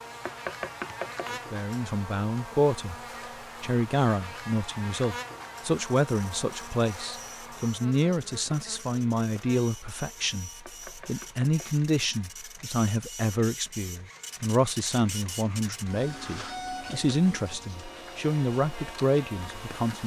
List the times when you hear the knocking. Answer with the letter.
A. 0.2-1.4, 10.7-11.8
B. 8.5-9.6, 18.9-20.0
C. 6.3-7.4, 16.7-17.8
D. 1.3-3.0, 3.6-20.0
A.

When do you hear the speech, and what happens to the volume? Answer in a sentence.
You can hear the speech briefly from 1.3 to 3.0 s; and from 3.6 to 20.0 s, at a steady volume.